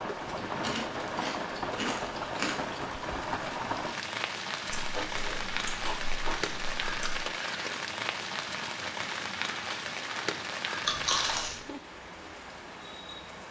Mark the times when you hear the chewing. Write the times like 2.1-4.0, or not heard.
0.3-2.8, 4.8-7.2, 10.8-11.6.